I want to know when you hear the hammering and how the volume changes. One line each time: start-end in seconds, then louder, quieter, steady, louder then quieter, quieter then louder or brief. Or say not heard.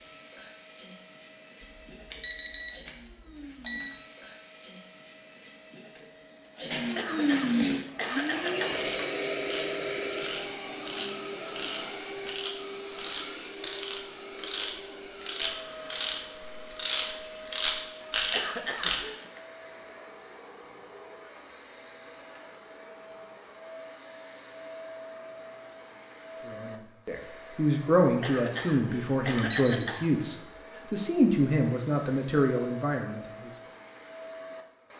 not heard.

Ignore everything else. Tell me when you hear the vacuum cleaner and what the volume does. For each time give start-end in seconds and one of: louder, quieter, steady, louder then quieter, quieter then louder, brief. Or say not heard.
0.0-34.9 louder then quieter.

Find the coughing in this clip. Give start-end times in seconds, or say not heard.
7.0-8.8, 18.3-19.4, 28.2-30.1.